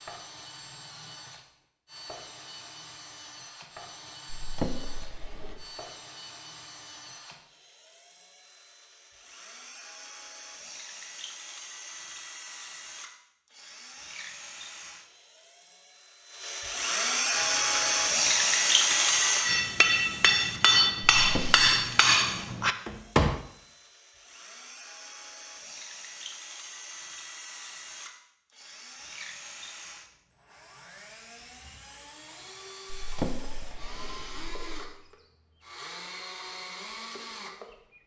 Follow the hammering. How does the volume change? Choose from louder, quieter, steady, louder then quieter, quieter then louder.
louder.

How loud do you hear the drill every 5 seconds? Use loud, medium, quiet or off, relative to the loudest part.
quiet, quiet, quiet, loud, quiet, quiet, quiet, quiet.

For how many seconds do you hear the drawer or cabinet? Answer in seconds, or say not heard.
4 s.